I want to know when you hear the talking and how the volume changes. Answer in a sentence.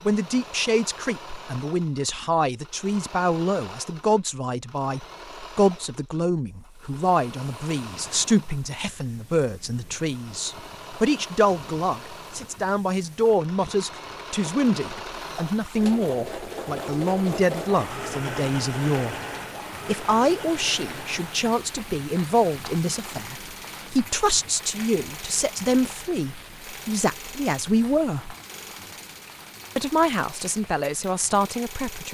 The talking can be heard from 0.1 to 19.1 s, at a steady volume; from 19.9 to 28.4 s, at a steady volume; and briefly from 29.8 to 32.0 s.